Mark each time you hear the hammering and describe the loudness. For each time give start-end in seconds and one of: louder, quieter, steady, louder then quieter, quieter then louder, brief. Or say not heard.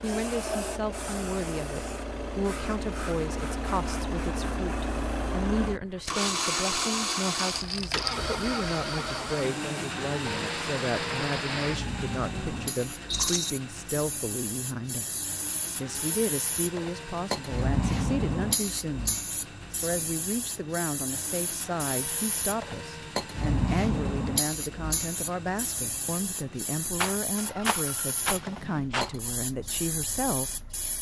not heard.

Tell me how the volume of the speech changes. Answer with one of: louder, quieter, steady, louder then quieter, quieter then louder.
steady.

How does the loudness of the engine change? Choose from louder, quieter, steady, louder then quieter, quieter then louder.
quieter.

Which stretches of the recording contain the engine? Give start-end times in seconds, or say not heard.
0.0-30.9.